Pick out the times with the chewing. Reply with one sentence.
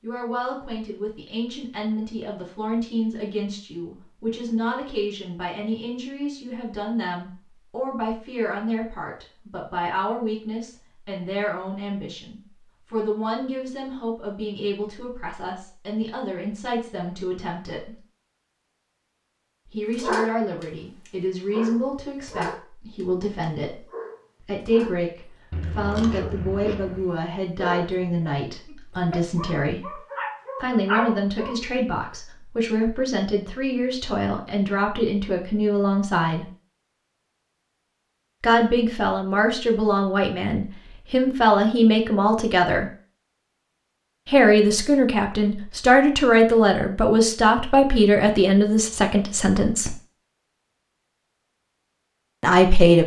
You can hear the chewing from 25.5 to 27.1 s.